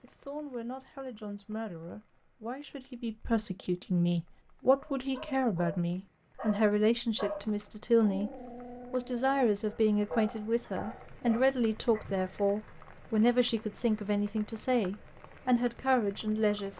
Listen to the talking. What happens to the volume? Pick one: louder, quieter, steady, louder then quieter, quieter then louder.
louder.